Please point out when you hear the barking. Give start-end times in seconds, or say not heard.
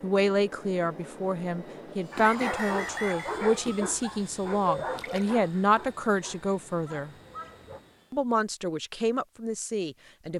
2.1-7.8.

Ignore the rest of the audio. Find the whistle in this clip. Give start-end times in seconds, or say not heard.
2.2-3.4.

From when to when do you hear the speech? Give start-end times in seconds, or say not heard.
0.0-7.1, 8.1-10.3.